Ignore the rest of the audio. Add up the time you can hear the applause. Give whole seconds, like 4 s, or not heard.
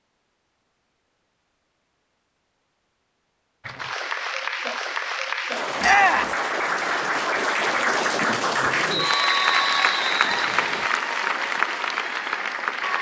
9 s.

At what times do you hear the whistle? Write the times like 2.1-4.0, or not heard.
8.8-10.8.